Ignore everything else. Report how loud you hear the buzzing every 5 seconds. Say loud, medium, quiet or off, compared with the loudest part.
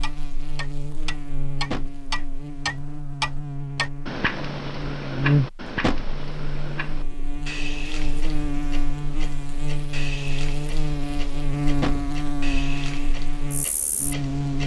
medium, loud, loud.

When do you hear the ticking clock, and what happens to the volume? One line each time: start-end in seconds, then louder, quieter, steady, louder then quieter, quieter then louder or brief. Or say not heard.
0.0-14.6 quieter.